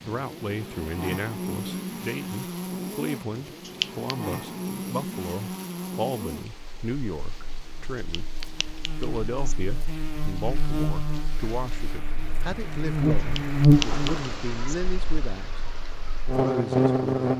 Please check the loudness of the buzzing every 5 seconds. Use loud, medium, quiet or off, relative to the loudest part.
medium, quiet, loud, loud.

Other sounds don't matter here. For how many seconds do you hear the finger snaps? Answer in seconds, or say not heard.
4 s.